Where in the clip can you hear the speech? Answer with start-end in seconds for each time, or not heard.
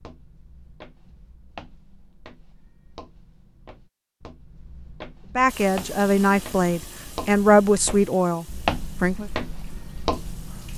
5.3-9.2.